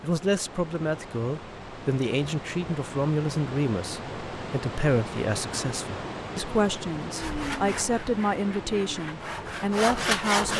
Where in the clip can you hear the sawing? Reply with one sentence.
You can hear the sawing from 7.1 to 10.5 s.